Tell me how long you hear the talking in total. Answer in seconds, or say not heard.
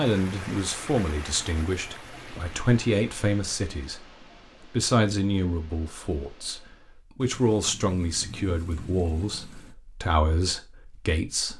11 s.